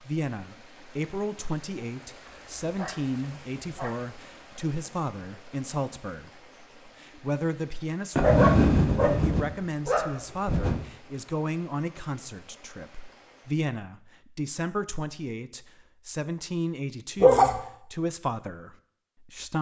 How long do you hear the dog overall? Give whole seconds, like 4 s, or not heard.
5 s.